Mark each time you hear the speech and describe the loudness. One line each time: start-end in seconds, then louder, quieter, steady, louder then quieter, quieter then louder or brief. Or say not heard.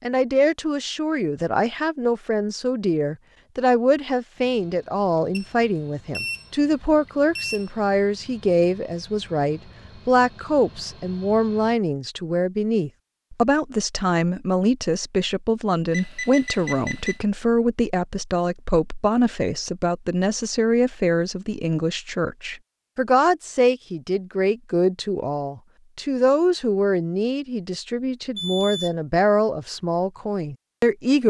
0.0-31.2 steady.